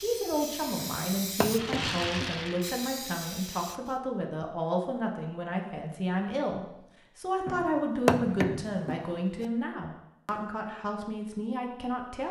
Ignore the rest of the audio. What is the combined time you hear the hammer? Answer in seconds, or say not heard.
4 s.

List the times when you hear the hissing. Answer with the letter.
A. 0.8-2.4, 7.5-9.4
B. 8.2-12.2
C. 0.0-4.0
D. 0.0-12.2
C.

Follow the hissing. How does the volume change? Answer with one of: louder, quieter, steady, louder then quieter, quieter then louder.
louder then quieter.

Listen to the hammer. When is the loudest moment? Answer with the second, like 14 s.
8 s.